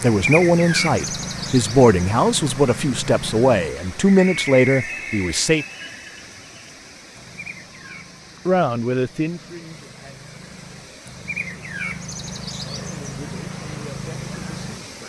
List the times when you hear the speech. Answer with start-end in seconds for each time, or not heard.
0.0-5.7, 8.4-10.2, 12.7-15.0.